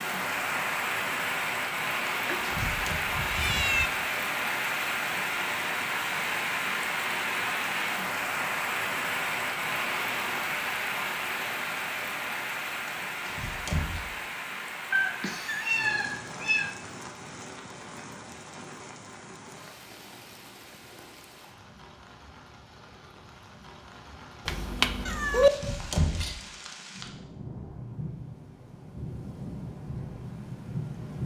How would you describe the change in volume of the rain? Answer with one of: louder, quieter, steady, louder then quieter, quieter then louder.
quieter then louder.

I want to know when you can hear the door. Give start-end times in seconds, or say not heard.
2.0-3.0, 13.2-14.0, 25.5-26.4.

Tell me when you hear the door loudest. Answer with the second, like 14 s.
26 s.